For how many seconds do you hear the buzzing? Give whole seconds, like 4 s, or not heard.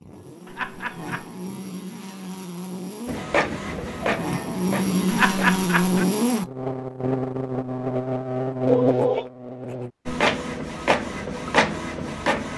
10 s.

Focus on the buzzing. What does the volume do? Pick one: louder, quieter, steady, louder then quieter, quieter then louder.
louder.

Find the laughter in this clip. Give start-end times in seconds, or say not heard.
0.5-1.2, 5.0-6.0, 8.7-9.3.